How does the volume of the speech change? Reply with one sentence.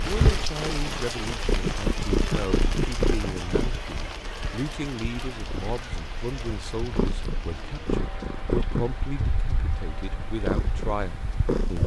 The loudness of the speech stays about the same.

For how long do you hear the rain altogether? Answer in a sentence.
You can hear the rain for 12 seconds altogether.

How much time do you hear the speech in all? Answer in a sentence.
You can hear the speech for 12 seconds altogether.